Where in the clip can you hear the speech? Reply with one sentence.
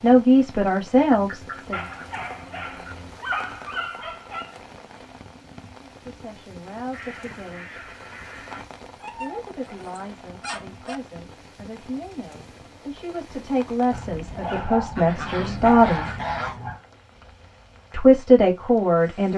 You can hear the speech from 0.0 to 1.9 s, from 5.8 to 7.8 s, from 9.2 to 16.1 s and from 17.9 to 19.3 s.